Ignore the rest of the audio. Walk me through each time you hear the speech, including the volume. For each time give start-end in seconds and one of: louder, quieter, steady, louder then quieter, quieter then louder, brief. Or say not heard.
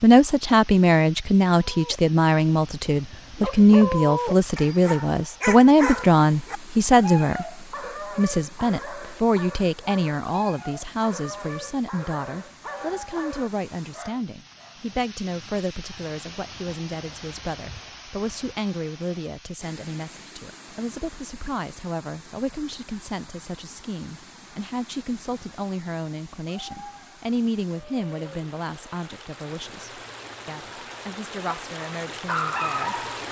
0.0-33.0 quieter.